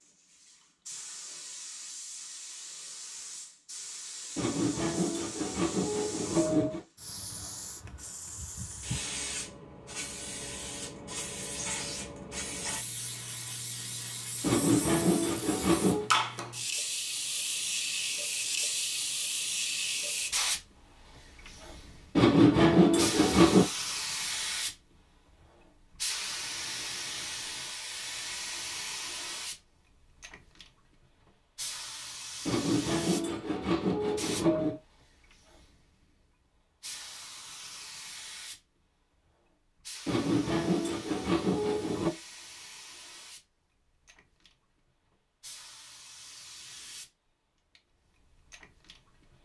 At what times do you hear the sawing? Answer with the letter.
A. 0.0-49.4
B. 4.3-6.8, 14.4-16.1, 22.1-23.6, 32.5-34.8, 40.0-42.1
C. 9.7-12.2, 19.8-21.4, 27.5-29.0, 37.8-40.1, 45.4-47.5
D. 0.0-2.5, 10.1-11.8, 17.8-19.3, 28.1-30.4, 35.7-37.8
B.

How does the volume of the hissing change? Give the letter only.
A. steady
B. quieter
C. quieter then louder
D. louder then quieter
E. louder
D.